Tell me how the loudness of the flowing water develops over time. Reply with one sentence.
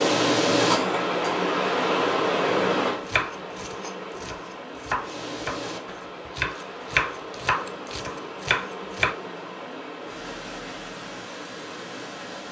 The loudness of the flowing water goes down.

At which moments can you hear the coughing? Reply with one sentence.
You can hear the coughing from 0.7 to 1.4 s.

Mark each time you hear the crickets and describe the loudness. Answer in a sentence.
You can't hear the crickets here.